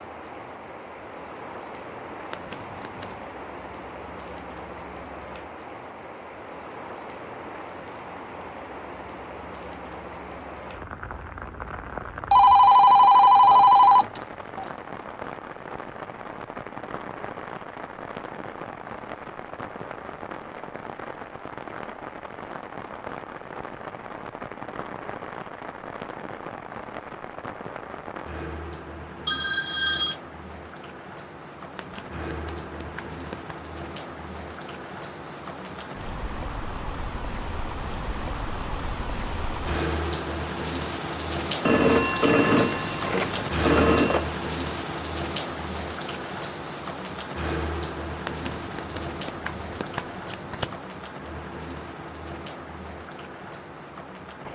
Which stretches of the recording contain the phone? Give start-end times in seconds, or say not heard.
12.3-14.7, 29.2-30.1, 41.6-44.2.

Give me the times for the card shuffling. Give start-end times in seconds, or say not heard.
2.3-3.4, 31.8-33.5, 48.2-50.9.